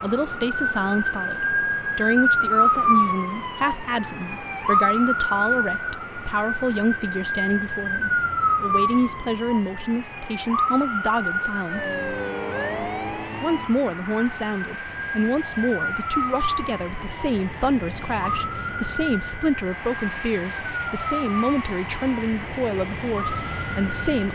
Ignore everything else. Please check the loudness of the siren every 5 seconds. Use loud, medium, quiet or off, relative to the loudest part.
loud, loud, medium, medium, medium.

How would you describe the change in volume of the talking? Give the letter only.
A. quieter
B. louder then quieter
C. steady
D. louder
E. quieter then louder
C.